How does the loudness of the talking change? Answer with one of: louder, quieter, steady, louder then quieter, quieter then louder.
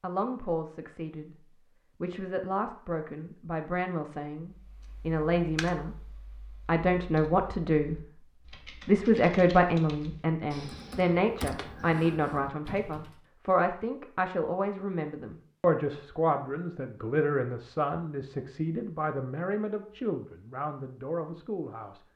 louder then quieter.